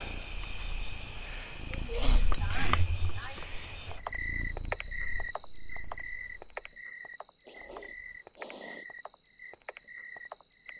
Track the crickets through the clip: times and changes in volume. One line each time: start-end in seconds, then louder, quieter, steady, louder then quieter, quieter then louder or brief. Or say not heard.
0.0-10.7 quieter.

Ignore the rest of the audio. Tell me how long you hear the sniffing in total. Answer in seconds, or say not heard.
3 s.